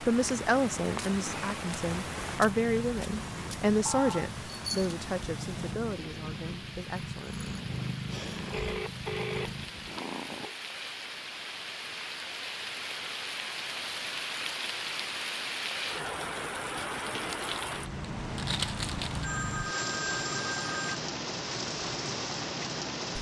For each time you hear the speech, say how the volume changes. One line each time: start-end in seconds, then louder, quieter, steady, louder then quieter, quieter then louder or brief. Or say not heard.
0.0-7.5 quieter.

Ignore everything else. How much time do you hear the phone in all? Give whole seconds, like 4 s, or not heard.
4 s.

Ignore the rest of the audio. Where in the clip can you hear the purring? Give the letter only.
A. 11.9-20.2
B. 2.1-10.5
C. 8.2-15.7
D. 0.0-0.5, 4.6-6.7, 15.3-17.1
B.